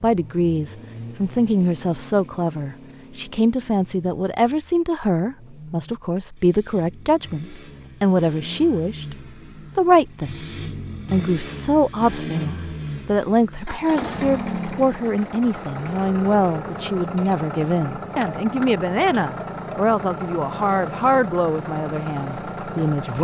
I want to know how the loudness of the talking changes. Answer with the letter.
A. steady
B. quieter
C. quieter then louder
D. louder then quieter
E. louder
A.